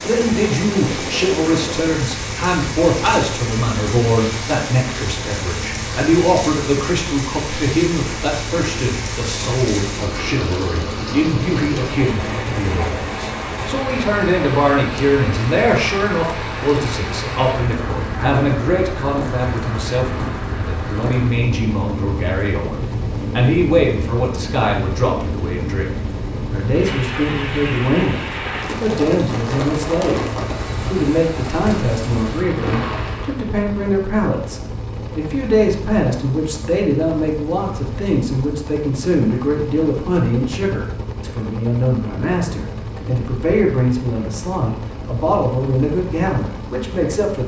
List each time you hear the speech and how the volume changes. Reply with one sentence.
The speech can be heard from 0.0 to 30.3 s, at a steady volume; and from 30.9 to 47.4 s, at a steady volume.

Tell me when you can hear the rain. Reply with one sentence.
You can hear the rain from 0.0 to 33.5 s.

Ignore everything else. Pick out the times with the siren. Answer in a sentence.
You can't hear the siren here.